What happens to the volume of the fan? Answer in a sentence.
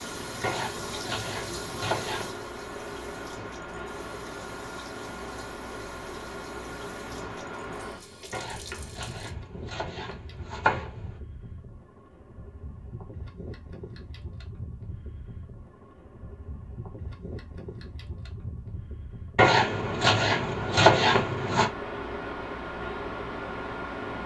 The volume of the fan goes down, then up.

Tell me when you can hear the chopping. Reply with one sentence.
The chopping can be heard from 0.4 to 2.4 s, from 8.3 to 11.2 s and from 19.4 to 21.7 s.